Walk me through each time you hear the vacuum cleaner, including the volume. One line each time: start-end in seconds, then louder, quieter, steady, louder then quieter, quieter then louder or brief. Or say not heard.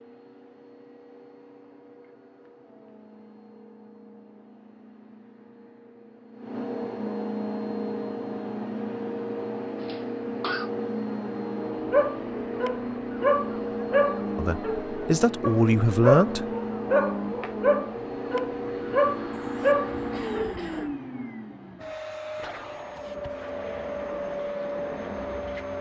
0.0-25.7 louder.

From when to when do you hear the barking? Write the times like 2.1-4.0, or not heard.
11.7-20.9.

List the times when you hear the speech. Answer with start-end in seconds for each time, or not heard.
14.3-16.4.